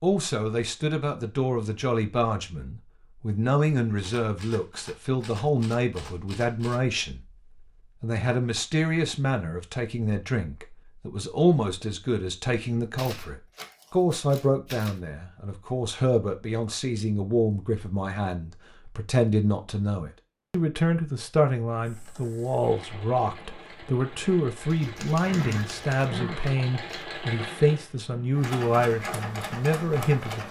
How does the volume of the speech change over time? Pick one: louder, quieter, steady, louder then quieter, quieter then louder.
steady.